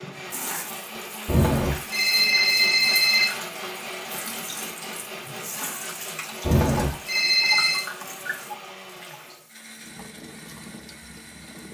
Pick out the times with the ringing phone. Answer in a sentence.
The ringing phone can be heard from 1.2 to 3.3 s and from 6.4 to 7.8 s.